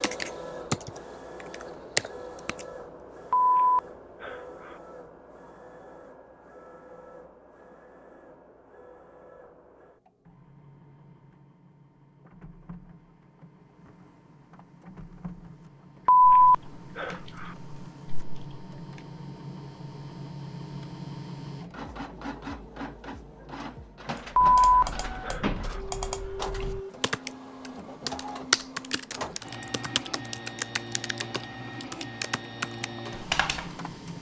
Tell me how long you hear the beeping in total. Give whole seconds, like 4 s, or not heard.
4 s.